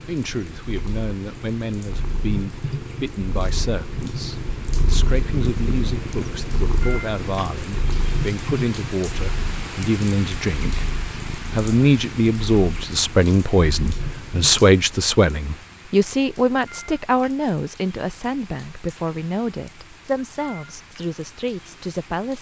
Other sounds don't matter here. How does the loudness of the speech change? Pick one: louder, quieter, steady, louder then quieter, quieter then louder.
louder then quieter.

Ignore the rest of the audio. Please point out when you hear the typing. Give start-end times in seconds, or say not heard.
not heard.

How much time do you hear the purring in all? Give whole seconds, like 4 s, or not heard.
15 s.